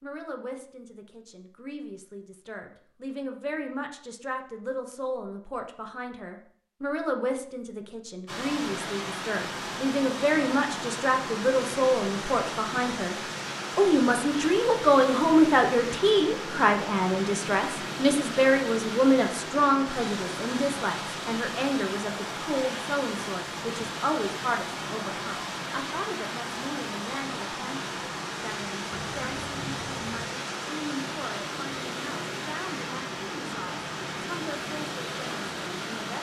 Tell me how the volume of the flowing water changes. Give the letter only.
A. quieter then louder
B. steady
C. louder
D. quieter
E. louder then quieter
B.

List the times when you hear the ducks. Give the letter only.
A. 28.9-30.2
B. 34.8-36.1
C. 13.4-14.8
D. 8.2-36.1
A.